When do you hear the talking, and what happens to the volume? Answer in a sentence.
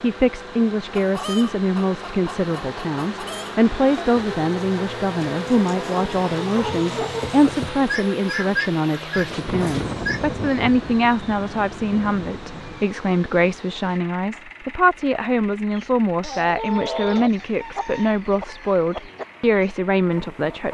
The talking can be heard from 0.0 to 20.6 s, at a steady volume.